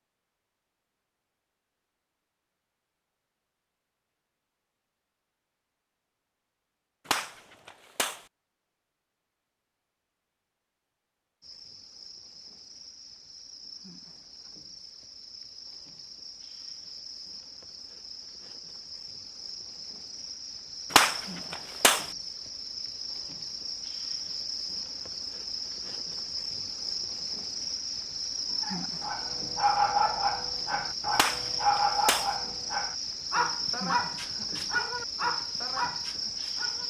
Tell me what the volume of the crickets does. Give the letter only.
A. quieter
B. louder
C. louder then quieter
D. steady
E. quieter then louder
B.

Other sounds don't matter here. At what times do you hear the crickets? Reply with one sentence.
The crickets can be heard from 11.4 to 36.8 s.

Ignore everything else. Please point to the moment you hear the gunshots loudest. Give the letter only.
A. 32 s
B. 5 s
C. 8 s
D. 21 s
D.